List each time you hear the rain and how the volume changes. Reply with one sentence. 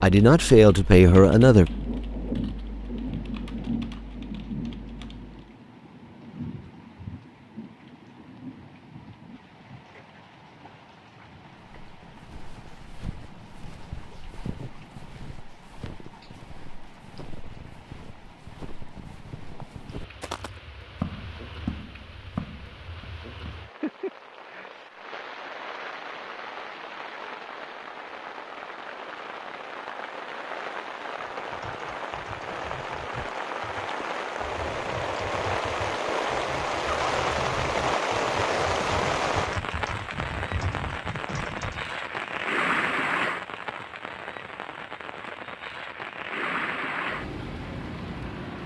The rain can be heard from 0.2 to 48.6 s, getting quieter then louder.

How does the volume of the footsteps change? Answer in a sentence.
The loudness of the footsteps goes up.